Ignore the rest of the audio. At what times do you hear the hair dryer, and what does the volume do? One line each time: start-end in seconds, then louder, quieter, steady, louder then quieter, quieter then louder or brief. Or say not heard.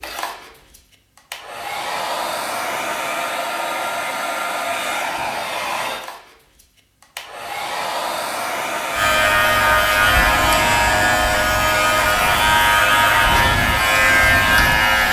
0.0-15.0 steady.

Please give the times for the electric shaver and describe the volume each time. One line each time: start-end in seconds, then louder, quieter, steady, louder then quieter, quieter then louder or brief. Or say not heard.
8.9-15.0 steady.